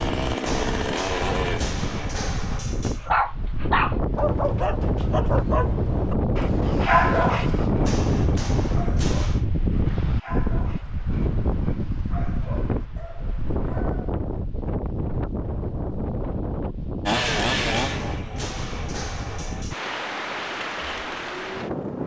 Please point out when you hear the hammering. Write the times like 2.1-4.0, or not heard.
0.5-3.1, 7.8-9.4, 17.2-19.9.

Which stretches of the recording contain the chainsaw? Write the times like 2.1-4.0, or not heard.
0.0-2.3, 17.1-19.6.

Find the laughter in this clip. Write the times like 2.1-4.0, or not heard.
not heard.